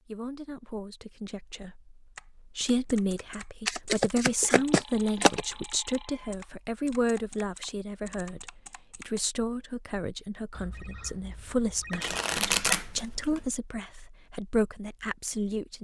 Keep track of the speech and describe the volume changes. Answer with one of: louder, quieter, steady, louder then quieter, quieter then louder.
steady.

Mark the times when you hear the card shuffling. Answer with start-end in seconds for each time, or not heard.
3.6-5.5, 11.9-13.4.